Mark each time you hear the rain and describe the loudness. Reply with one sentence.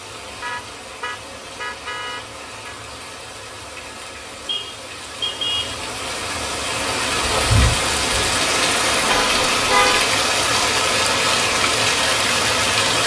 You can hear the rain from 0.0 to 13.0 s, getting louder.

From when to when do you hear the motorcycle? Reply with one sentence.
The motorcycle can't be heard in this clip.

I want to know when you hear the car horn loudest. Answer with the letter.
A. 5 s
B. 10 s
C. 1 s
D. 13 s
B.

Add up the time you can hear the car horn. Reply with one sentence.
The car horn can be heard for 5 seconds in total.